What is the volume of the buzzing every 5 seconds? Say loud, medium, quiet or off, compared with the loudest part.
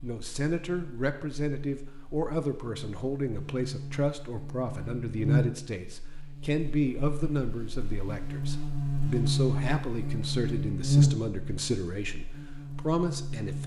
quiet, loud, loud.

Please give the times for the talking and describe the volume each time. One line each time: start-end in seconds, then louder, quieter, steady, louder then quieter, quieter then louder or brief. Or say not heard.
0.0-13.6 steady.